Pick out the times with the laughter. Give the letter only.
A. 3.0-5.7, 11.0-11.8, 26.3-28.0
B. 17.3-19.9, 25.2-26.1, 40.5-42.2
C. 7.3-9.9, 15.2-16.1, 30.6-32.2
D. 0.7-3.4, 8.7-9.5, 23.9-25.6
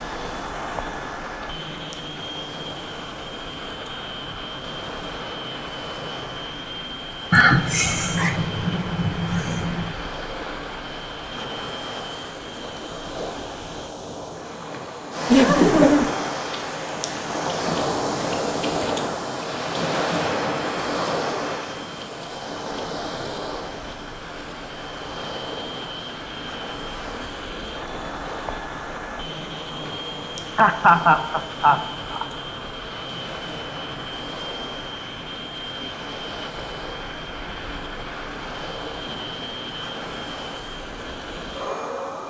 C.